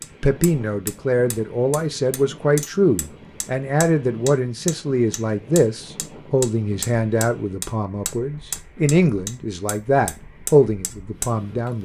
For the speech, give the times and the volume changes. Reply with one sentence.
The speech can be heard from 0.2 to 11.8 s, at a steady volume.